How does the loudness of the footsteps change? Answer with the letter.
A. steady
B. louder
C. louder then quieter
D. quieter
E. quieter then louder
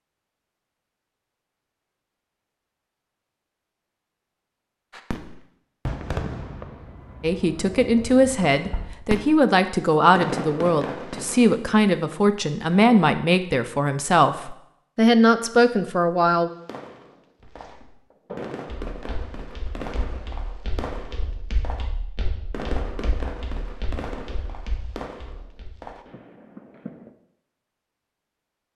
D.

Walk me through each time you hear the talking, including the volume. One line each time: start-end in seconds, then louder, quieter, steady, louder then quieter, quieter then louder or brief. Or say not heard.
7.2-16.5 steady.